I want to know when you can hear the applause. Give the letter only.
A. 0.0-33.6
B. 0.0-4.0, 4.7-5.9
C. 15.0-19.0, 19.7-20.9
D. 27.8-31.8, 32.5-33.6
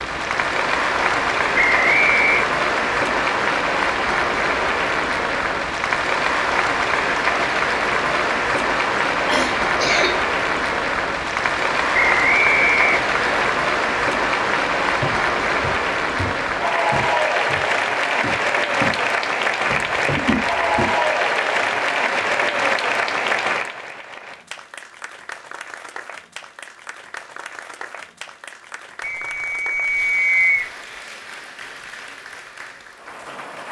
A.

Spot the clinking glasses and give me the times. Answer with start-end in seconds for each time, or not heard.
not heard.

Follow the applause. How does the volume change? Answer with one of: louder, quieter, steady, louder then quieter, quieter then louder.
quieter.